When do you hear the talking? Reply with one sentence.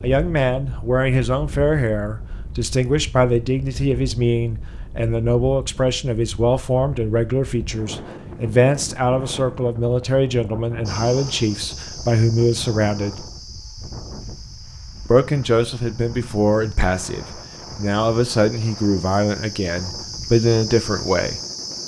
The talking can be heard from 0.0 to 13.2 s and from 15.1 to 21.8 s.